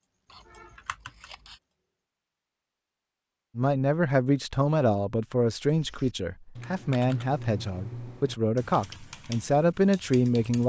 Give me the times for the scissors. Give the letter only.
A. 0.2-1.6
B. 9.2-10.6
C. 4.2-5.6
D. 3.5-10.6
A.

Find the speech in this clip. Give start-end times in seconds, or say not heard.
3.5-10.6.